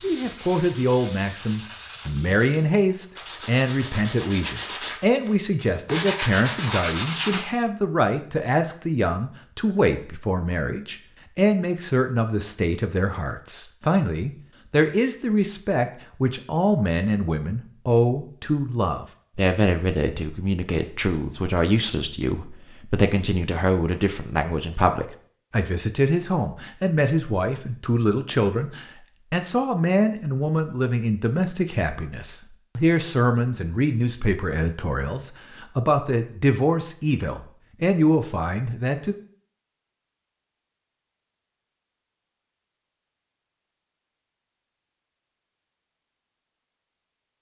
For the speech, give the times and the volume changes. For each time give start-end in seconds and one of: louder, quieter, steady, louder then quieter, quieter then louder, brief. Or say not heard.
0.0-39.1 steady.